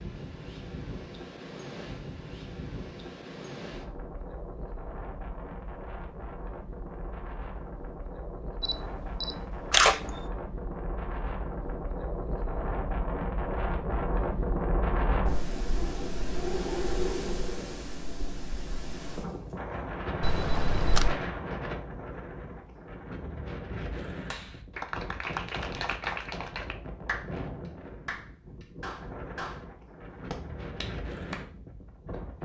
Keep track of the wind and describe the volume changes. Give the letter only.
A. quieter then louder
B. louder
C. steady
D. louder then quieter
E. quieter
D.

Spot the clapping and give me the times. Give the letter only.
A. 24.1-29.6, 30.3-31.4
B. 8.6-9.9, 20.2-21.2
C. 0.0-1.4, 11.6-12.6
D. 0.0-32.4
A.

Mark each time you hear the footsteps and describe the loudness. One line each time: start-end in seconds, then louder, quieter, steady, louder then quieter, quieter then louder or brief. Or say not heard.
not heard.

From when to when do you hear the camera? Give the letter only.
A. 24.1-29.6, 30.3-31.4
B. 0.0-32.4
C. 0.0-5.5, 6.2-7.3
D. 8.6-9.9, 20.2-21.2
D.